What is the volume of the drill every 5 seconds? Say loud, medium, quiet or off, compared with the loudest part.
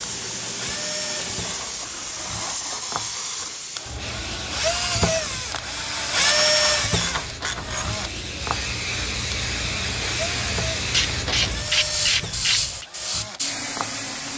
medium, loud, medium.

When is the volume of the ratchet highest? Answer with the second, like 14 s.
12 s.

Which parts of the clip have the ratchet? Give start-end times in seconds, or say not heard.
1.3-2.9, 6.2-7.9, 10.9-12.8.